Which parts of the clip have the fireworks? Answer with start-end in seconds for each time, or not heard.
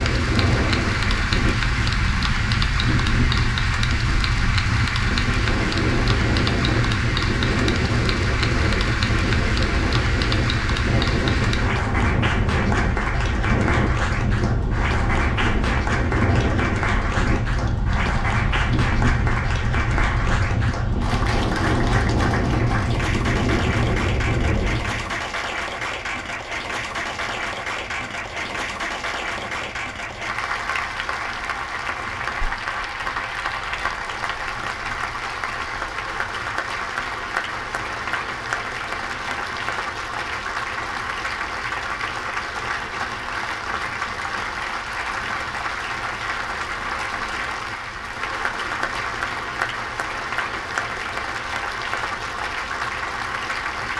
not heard.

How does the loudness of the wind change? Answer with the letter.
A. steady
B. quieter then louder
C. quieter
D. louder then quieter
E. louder
C.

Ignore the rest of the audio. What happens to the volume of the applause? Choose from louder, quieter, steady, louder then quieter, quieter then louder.
steady.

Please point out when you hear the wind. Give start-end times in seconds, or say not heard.
0.0-53.9.